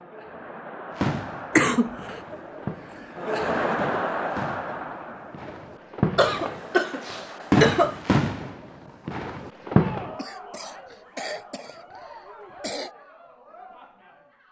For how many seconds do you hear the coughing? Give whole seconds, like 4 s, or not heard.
5 s.